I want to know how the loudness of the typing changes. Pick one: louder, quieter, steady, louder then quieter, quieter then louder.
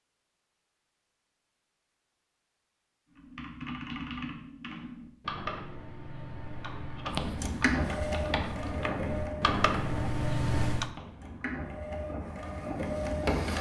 louder.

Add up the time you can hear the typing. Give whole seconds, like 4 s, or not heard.
8 s.